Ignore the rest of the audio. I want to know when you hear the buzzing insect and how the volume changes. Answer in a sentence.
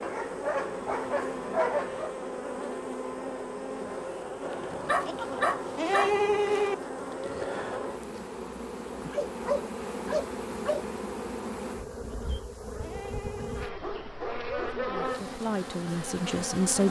The buzzing insect can be heard from 0.0 to 16.8 s, at a steady volume.